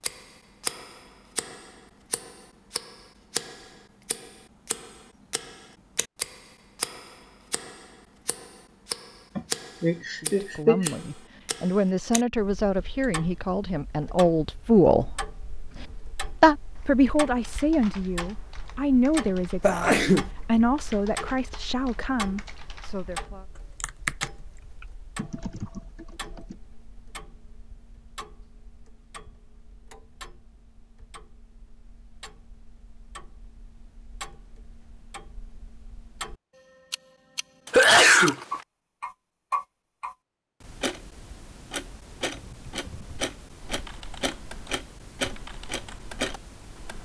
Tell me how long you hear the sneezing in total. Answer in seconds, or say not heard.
3 s.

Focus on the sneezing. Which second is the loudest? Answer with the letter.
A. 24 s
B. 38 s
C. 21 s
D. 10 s
B.